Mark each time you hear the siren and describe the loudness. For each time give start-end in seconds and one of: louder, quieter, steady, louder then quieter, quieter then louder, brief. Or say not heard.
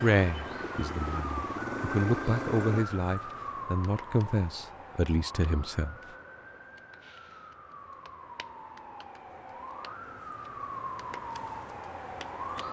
0.0-12.6 quieter then louder.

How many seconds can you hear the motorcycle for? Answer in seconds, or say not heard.
3 s.